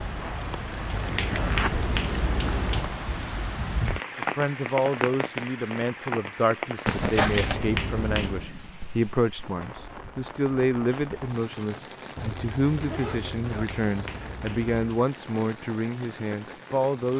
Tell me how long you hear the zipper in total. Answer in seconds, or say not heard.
4 s.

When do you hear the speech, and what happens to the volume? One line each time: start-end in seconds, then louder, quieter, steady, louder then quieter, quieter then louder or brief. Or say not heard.
4.2-17.1 steady.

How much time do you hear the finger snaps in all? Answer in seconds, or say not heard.
5 s.